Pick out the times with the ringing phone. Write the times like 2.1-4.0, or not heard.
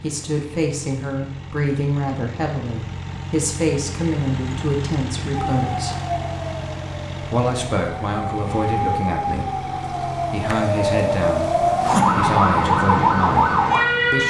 not heard.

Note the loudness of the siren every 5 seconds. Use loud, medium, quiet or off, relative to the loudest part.
off, medium, loud.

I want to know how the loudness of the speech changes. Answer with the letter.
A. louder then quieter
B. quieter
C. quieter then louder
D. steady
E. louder
D.